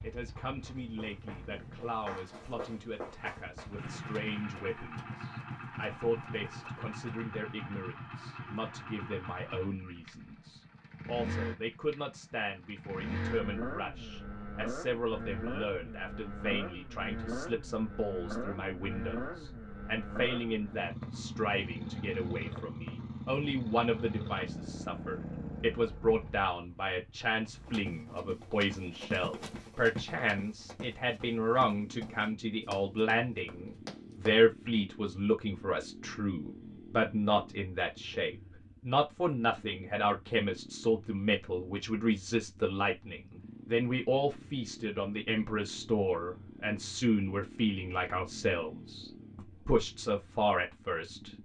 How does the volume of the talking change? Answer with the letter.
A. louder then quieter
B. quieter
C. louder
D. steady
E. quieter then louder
C.